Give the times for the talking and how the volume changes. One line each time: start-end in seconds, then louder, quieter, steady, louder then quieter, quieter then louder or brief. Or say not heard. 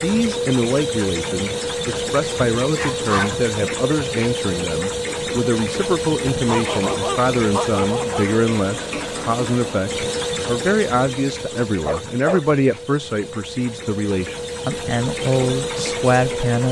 0.0-16.6 steady.